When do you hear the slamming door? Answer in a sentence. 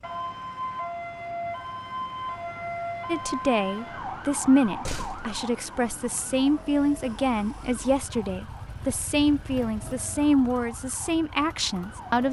You can hear the slamming door from 4.7 to 5.3 s.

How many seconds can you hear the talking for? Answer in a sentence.
The talking can be heard for 9 seconds in total.